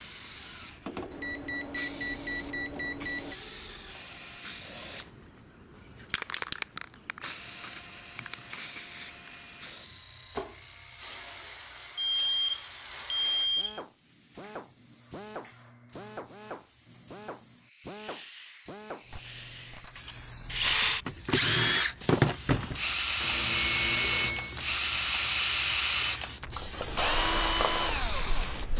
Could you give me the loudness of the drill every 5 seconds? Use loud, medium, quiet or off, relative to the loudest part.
quiet, quiet, quiet, quiet, loud, loud.